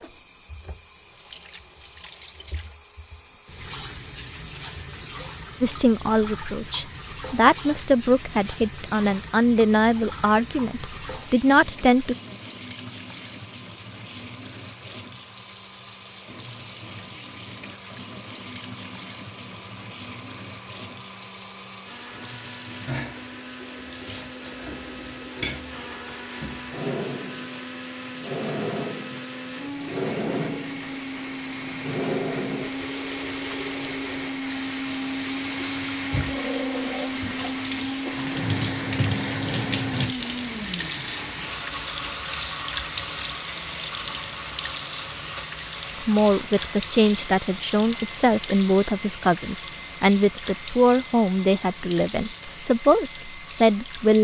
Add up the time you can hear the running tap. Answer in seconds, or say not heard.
54 s.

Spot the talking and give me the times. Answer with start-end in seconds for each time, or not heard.
5.6-12.2, 46.0-54.1.